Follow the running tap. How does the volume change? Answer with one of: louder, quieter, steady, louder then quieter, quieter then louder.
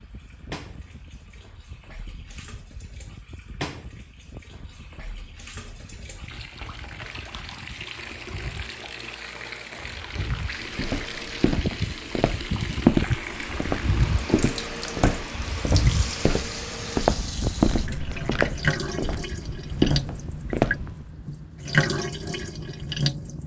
louder.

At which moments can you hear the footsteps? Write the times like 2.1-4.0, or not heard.
10.7-20.9.